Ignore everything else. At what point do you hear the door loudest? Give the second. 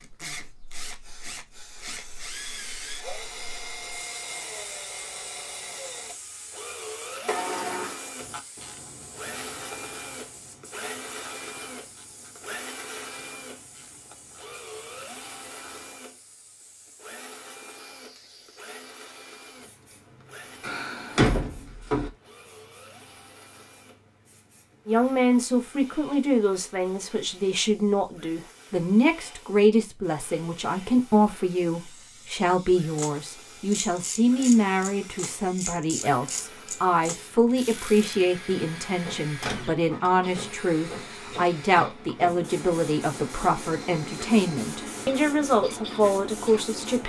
21 s.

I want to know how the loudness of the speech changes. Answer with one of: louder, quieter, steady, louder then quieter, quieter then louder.
steady.